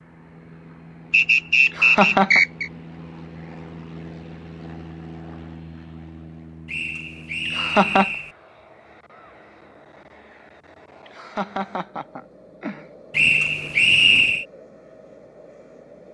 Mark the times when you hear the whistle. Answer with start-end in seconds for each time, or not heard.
1.1-2.7, 6.7-8.3, 13.1-14.4.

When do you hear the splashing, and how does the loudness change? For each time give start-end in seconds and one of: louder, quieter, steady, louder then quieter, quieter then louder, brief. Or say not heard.
not heard.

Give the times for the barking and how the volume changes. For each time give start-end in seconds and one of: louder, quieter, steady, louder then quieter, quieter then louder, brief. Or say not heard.
not heard.